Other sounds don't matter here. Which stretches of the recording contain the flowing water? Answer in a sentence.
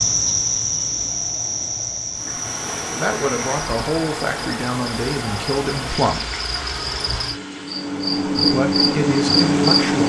You can hear the flowing water from 2.1 to 10.0 s.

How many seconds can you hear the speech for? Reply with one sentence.
The speech can be heard for 5 seconds in total.